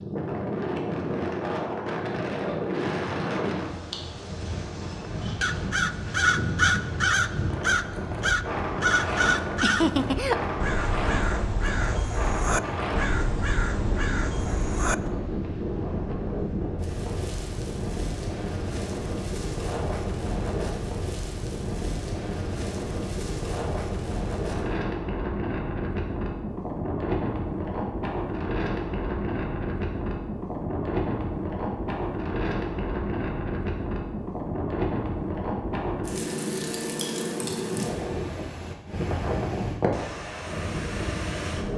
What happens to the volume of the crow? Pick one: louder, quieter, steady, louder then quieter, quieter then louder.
quieter.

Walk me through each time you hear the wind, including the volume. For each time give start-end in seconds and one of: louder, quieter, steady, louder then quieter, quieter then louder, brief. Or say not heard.
0.0-41.7 steady.